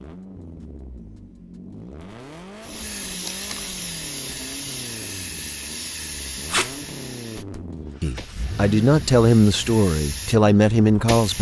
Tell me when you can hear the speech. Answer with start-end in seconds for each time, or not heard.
8.0-11.3.